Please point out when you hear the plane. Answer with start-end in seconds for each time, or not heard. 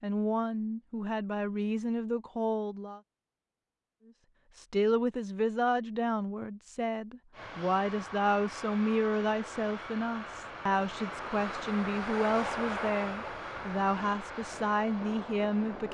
7.3-15.9.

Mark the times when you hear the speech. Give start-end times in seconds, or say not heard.
0.0-3.0, 4.5-15.9.